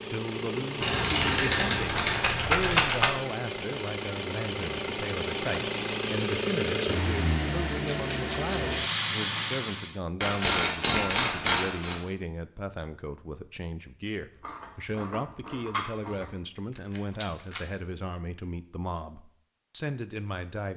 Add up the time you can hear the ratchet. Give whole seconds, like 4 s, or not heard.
6 s.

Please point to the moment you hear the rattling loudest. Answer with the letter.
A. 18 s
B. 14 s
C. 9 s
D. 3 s
D.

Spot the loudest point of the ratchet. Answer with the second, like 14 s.
1 s.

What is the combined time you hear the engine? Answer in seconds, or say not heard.
10 s.